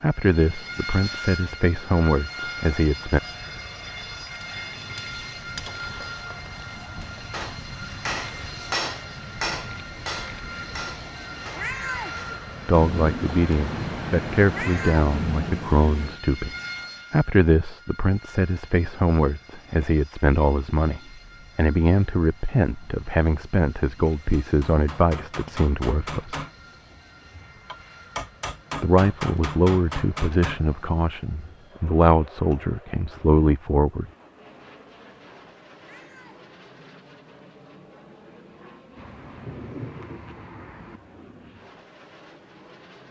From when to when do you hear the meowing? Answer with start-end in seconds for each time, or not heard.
11.6-12.2, 14.5-15.1, 35.8-36.4.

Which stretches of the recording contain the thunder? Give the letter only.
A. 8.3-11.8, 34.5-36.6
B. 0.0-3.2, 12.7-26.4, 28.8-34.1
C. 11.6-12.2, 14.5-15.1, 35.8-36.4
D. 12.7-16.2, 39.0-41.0
D.